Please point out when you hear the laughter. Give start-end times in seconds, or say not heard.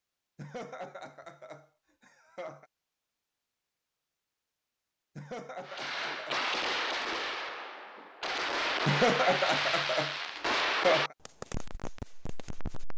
0.3-2.6, 5.2-6.5, 8.8-11.2.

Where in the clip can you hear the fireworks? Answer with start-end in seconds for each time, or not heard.
5.7-12.9.